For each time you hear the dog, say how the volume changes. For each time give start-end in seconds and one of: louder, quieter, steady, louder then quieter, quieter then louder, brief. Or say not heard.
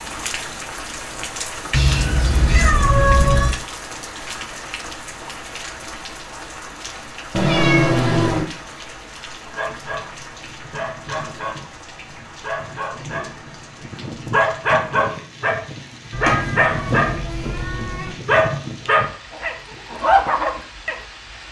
9.6-21.0 louder.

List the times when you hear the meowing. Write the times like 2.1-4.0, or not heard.
1.7-3.6, 7.3-8.4, 16.1-18.1.